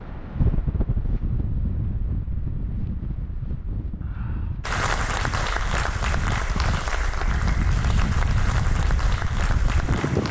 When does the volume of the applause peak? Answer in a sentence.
The volume of the applause peaks at 5 seconds.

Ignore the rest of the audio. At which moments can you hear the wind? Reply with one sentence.
The wind can be heard from 0.0 to 10.2 s.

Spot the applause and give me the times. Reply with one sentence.
You can hear the applause from 4.6 to 10.2 s.